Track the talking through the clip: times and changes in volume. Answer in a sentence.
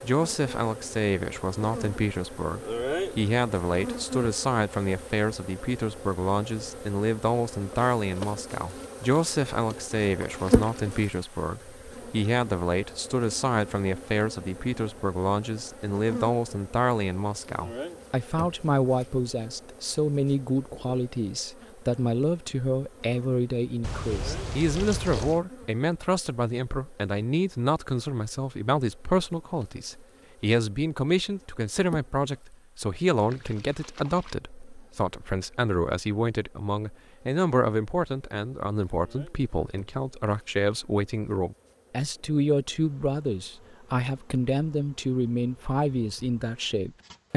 The talking can be heard from 0.0 to 47.3 s, at a steady volume.